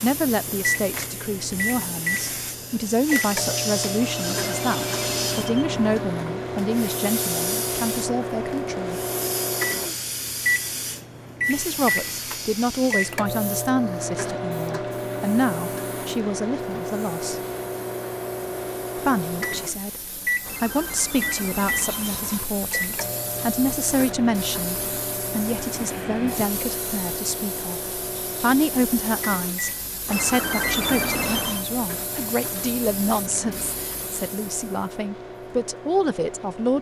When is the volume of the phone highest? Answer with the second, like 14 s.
31 s.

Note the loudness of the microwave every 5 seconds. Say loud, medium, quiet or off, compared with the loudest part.
loud, loud, loud, loud, loud, medium, medium, medium.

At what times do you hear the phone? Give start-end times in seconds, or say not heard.
4.0-5.8, 20.4-22.4, 30.1-31.6.